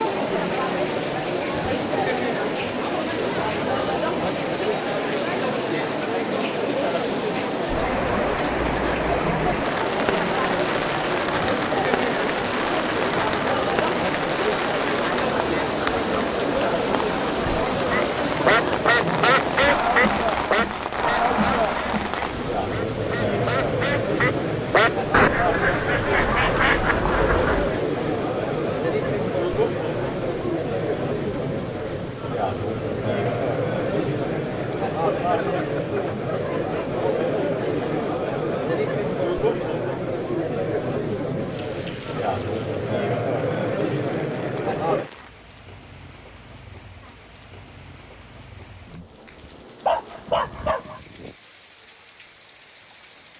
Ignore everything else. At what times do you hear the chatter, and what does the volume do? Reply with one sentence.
The chatter can be heard from 0.0 to 45.1 s, at a steady volume.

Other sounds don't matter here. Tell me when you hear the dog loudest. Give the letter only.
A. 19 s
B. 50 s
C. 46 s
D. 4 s
B.